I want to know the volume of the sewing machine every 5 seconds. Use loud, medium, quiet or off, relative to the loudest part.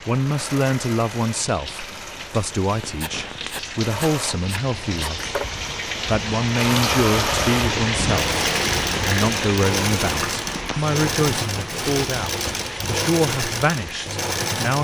medium, loud, loud.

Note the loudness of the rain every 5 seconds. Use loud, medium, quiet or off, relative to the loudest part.
medium, loud, medium.